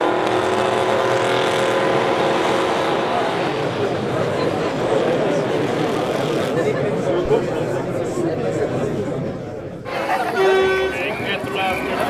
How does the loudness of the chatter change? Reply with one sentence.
The volume of the chatter goes up.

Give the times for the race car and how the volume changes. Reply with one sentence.
The race car can be heard from 0.0 to 6.5 s, getting quieter.